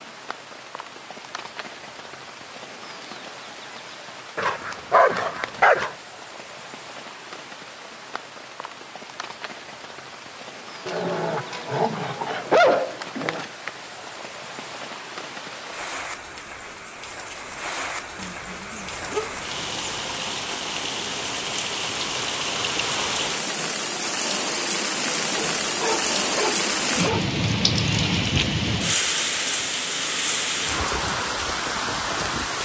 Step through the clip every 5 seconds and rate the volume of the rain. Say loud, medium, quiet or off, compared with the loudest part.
quiet, quiet, quiet, medium, loud, loud, loud.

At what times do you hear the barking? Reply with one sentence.
The barking can be heard from 4.3 to 6.0 s, from 10.8 to 13.4 s, from 18.1 to 20.2 s and from 25.4 to 27.2 s.